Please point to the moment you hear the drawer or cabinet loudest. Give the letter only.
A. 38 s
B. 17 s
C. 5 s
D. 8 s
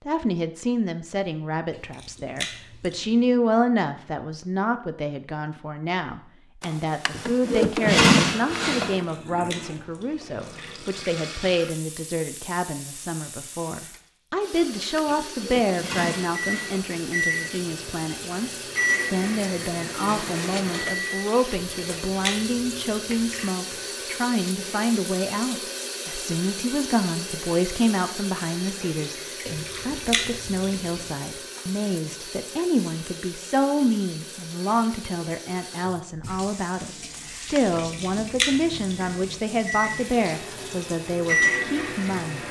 D.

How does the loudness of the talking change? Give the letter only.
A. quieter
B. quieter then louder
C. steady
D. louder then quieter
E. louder
C.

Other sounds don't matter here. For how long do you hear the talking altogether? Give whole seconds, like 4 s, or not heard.
42 s.